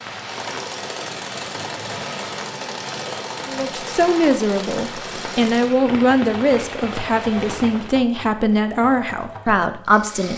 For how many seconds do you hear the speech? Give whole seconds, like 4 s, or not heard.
7 s.